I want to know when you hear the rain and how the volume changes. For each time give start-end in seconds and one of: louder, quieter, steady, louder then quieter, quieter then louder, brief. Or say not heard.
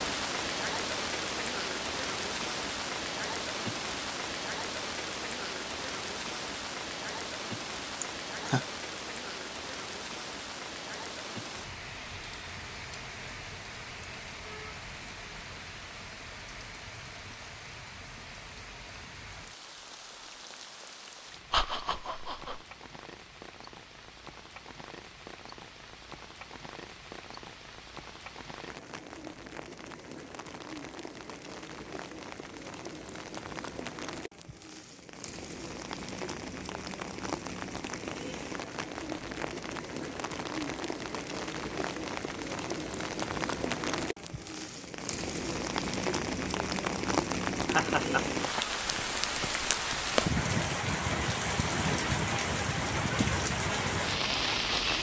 0.0-54.9 quieter then louder.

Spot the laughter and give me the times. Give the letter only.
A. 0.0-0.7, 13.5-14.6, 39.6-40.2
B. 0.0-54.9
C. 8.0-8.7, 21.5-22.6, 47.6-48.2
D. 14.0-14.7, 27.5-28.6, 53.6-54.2
C.